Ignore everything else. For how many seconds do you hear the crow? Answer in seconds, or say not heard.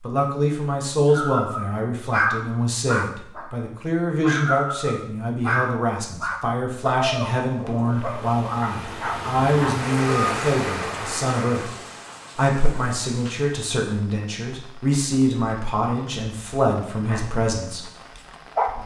not heard.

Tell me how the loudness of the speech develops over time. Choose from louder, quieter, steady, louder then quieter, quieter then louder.
steady.